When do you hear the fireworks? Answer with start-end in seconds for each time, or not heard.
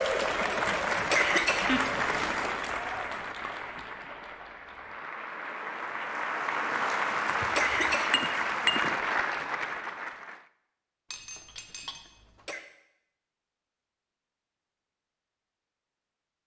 not heard.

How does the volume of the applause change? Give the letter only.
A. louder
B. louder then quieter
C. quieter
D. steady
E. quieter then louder
E.